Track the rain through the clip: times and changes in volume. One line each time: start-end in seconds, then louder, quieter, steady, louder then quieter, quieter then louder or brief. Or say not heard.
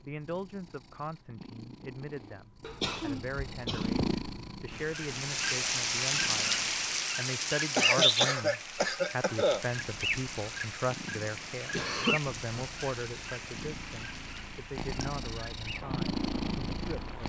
4.7-17.2 quieter.